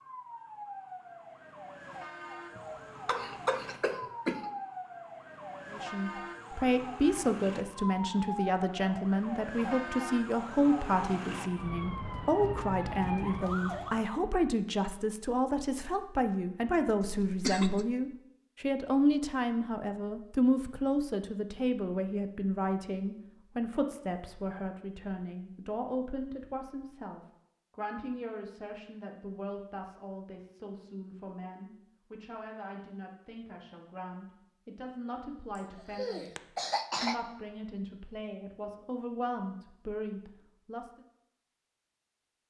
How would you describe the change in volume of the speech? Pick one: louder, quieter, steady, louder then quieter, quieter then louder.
quieter.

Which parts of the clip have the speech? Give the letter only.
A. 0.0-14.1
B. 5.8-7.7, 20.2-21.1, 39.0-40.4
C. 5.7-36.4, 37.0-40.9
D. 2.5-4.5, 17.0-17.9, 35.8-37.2
C.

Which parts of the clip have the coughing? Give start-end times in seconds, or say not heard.
2.5-4.5, 17.0-17.9, 35.8-37.2.